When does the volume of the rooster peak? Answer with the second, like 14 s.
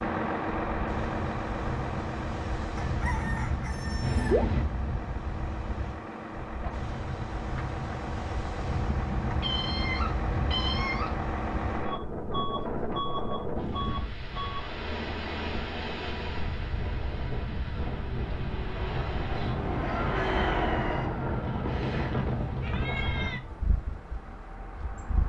4 s.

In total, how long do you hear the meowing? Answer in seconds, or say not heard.
4 s.